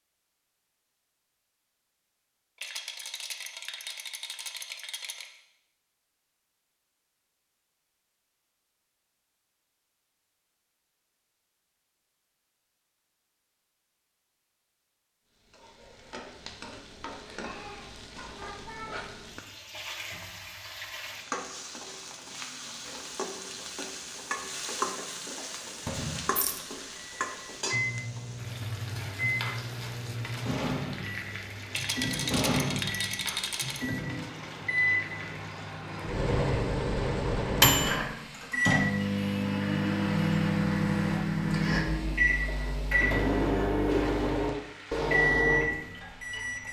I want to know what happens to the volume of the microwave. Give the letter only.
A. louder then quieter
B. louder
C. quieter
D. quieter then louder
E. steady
B.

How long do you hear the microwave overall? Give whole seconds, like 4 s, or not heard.
21 s.